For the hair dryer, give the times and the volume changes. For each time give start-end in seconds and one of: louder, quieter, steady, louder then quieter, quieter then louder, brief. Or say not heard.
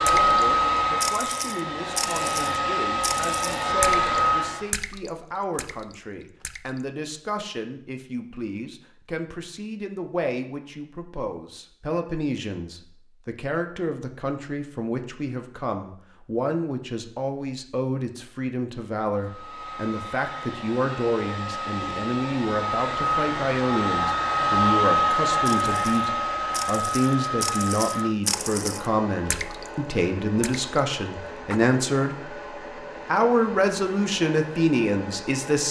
0.0-4.7 quieter then louder
19.1-35.6 louder then quieter.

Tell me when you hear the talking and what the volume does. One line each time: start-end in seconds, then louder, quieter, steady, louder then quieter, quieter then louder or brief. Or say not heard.
0.0-32.4 louder
33.0-35.6 brief.